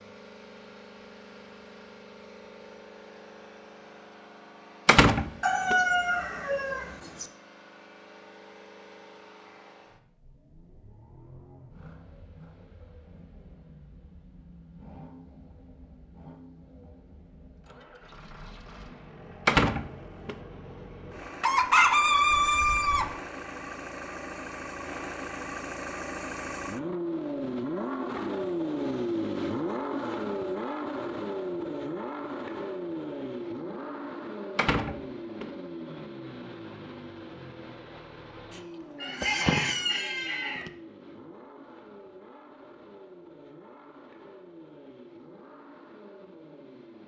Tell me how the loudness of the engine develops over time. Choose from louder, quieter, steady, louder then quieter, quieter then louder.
louder then quieter.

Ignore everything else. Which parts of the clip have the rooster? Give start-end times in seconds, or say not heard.
5.4-7.3, 21.4-23.1, 39.0-40.7.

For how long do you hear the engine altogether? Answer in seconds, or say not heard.
47 s.